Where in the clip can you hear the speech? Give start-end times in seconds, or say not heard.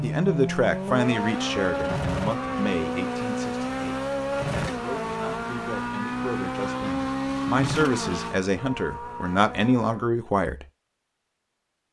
0.0-10.7.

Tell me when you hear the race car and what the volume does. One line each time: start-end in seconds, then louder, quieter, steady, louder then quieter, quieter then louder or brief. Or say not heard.
0.0-10.1 quieter.